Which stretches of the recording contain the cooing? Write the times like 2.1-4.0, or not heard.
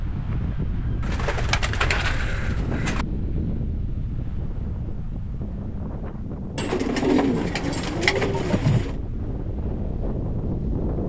1.0-3.0, 6.5-8.9.